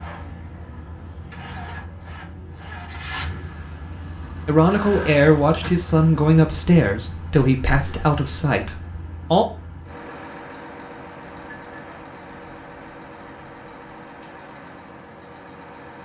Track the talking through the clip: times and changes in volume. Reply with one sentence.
You can hear the talking from 4.5 to 9.4 s, getting quieter.